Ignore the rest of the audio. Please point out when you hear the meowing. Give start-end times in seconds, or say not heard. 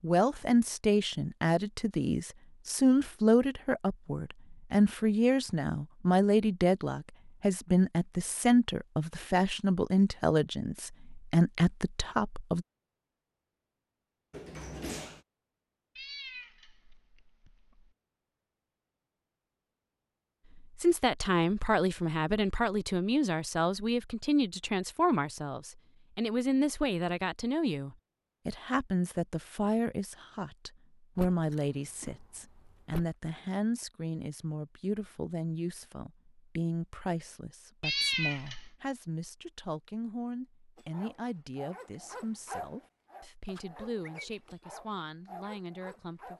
15.9-17.9, 37.8-38.8.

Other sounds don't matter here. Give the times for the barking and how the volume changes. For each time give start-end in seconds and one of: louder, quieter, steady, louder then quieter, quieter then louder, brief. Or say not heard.
40.8-46.3 louder then quieter.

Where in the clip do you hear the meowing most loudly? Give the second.
38 s.